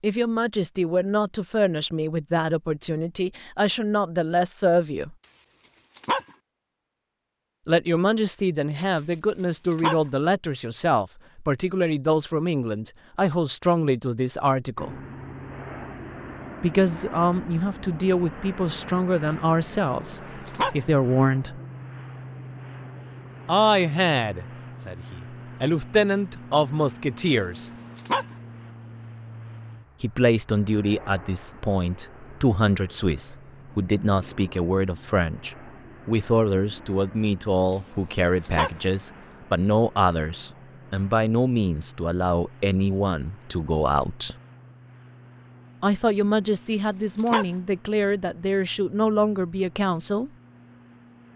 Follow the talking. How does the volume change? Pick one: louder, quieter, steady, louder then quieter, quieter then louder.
steady.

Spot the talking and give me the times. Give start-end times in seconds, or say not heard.
0.0-5.2, 7.7-14.9, 16.6-21.6, 23.4-27.7, 30.0-44.4, 45.8-50.3.